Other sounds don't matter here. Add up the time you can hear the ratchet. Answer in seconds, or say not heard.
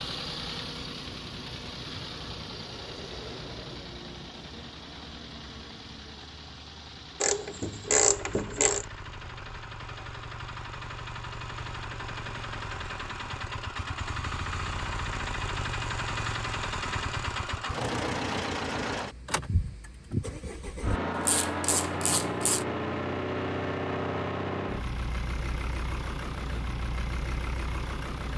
3 s.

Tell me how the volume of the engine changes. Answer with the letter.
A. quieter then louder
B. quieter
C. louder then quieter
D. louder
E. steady
D.